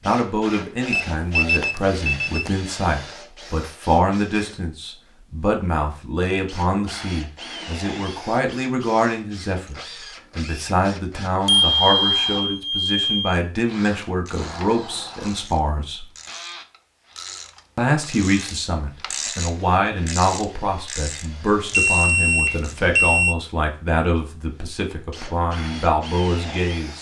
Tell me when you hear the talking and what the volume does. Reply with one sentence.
You can hear the talking from 0.1 to 16.1 s, at a steady volume; and from 17.8 to 26.9 s, at a steady volume.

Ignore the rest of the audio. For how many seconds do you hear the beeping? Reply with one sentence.
You can hear the beeping for 5 seconds altogether.